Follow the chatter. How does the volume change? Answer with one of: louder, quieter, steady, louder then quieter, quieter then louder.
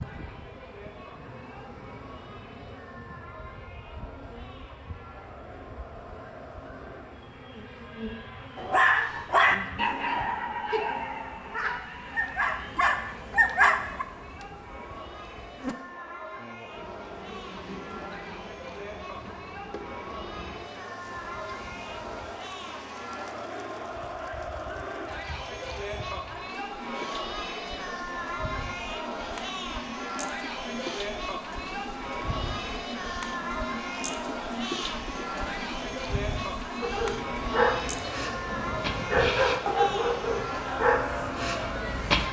louder.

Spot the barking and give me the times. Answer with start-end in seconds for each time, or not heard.
8.6-14.1, 36.8-42.2.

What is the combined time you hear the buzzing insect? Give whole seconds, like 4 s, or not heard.
42 s.